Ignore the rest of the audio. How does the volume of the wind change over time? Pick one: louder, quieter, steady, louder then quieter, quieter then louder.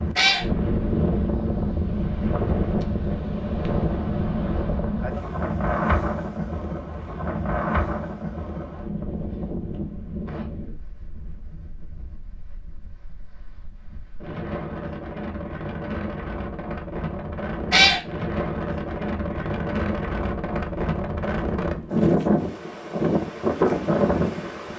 quieter then louder.